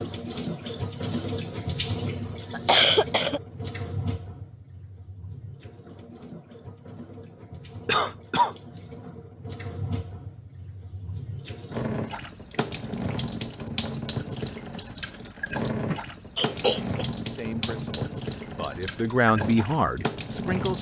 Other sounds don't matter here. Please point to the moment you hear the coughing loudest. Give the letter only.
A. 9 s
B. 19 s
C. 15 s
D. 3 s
D.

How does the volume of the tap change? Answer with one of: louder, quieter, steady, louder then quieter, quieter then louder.
quieter then louder.